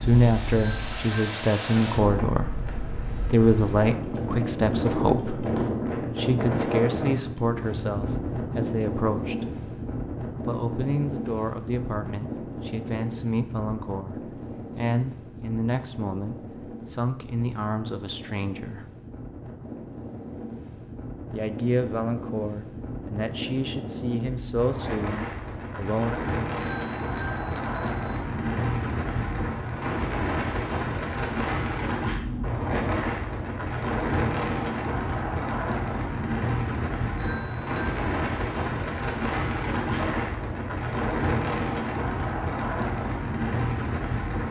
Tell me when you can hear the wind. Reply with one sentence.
You can hear the wind from 0.0 to 44.4 s.